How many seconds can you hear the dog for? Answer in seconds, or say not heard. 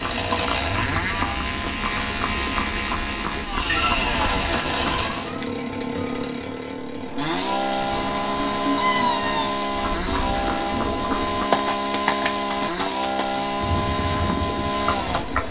not heard.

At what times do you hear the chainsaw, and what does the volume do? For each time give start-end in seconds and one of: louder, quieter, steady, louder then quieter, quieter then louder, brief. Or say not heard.
0.0-15.4 steady.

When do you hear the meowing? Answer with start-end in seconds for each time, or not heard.
3.6-5.5, 7.9-9.6.